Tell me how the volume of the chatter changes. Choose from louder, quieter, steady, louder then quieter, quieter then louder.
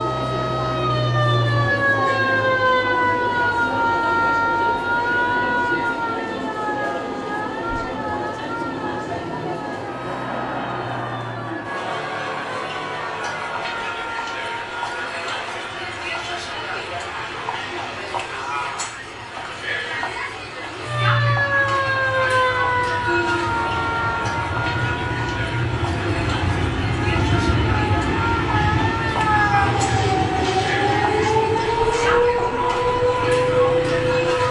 steady.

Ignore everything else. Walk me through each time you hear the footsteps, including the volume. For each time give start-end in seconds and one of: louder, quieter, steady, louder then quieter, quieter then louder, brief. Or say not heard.
not heard.